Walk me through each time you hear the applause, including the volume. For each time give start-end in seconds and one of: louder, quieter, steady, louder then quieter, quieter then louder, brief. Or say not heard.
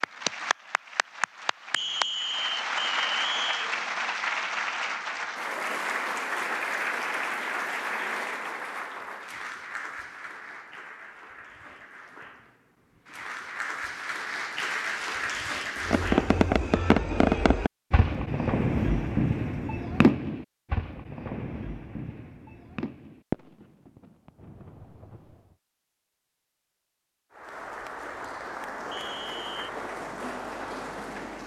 0.0-16.4 quieter then louder
27.3-31.4 steady.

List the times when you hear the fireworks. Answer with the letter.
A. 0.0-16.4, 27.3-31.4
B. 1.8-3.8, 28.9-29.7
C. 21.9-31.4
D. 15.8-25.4
D.